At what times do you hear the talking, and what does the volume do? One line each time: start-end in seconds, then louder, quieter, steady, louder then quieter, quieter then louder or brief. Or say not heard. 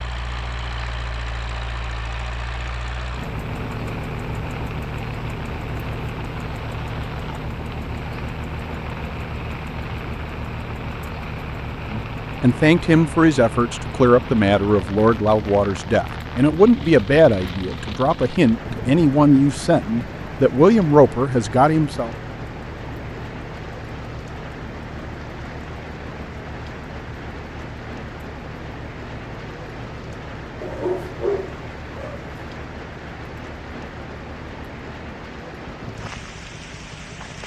11.9-22.1 steady.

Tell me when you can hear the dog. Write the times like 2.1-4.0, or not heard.
30.6-32.2.